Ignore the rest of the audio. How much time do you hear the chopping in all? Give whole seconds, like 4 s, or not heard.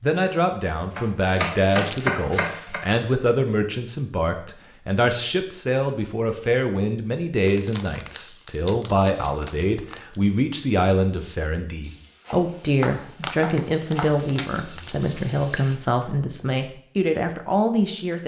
4 s.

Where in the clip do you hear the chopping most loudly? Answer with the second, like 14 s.
2 s.